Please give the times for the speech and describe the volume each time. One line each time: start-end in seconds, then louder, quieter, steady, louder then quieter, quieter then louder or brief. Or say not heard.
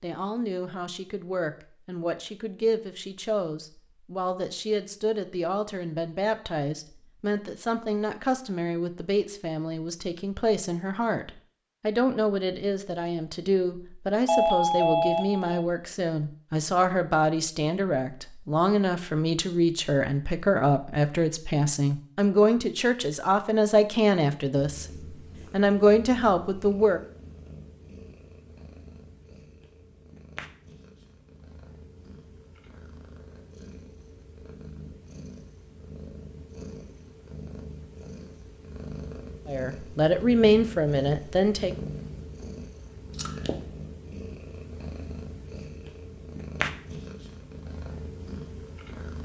0.0-24.9 louder
25.5-27.0 brief
39.5-41.7 brief.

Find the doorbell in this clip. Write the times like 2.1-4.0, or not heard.
14.2-15.7.